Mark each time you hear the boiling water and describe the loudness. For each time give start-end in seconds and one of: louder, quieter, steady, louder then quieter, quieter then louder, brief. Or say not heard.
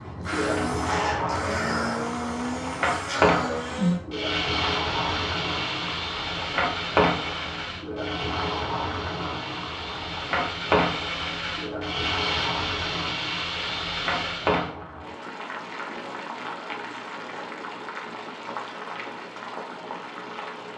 0.0-20.7 quieter.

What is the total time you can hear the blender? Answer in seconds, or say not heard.
15 s.